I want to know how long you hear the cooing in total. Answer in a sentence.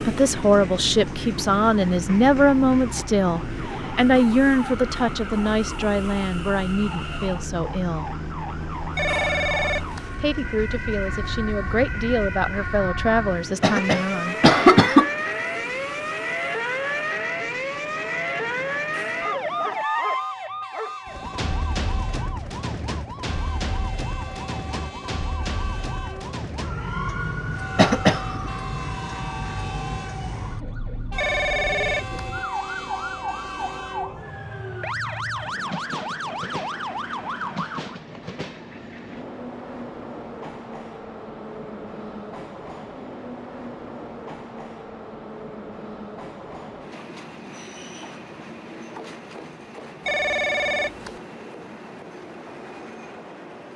You can't hear the cooing here.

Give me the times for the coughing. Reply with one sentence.
The coughing can be heard from 13.6 to 15.1 s and from 27.8 to 28.5 s.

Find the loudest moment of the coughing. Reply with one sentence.
The volume of the coughing peaks at 15 seconds.